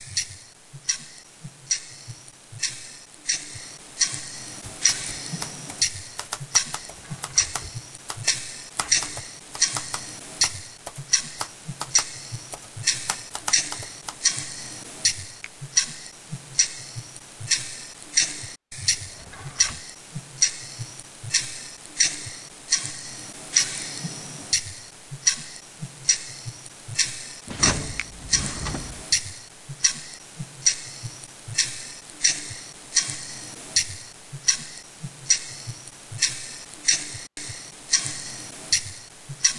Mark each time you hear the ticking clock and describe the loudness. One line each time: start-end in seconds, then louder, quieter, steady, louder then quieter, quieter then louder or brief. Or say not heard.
0.0-39.5 steady.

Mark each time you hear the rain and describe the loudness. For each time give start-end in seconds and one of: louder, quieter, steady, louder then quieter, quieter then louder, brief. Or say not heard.
not heard.